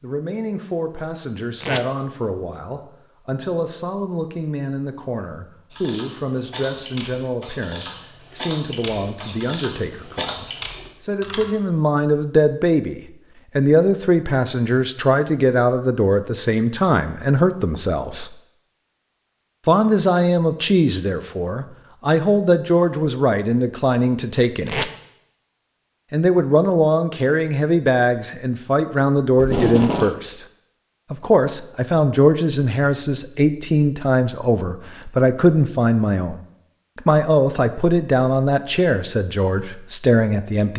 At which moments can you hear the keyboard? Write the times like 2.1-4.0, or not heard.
5.7-11.5.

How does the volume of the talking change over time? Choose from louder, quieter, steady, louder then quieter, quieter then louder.
louder.